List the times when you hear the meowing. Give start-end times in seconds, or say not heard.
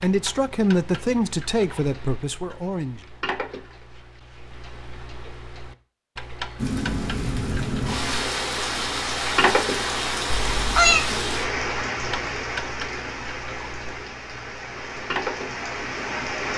10.3-11.1.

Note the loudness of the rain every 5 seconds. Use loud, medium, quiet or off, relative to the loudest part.
off, loud, loud, loud.